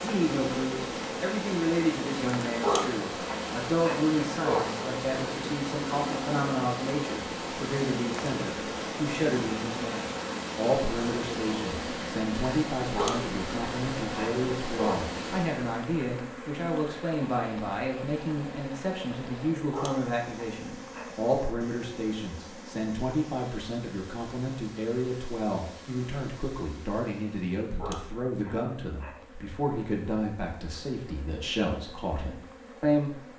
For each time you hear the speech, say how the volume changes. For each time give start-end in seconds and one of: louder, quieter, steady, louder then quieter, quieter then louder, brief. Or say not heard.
0.0-33.2 steady.